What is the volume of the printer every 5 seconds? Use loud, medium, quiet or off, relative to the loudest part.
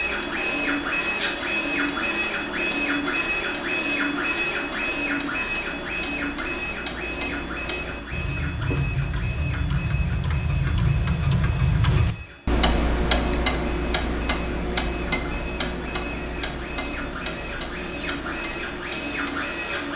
loud, medium, quiet, medium.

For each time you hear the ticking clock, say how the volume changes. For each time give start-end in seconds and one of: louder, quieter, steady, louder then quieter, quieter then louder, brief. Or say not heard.
0.0-19.9 louder then quieter.